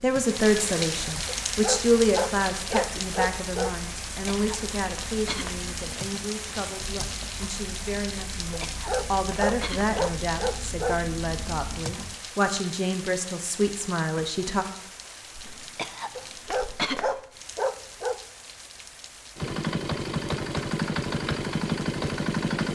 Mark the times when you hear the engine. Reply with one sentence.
The engine can be heard from 0.0 to 12.2 s and from 19.4 to 22.6 s.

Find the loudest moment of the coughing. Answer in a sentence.
The loudest moment of the coughing is at 17 seconds.